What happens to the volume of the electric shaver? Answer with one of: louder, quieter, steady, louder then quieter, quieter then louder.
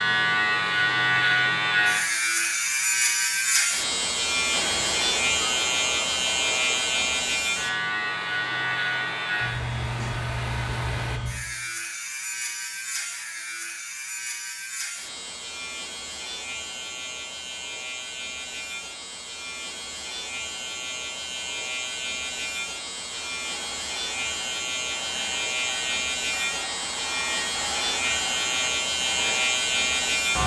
quieter then louder.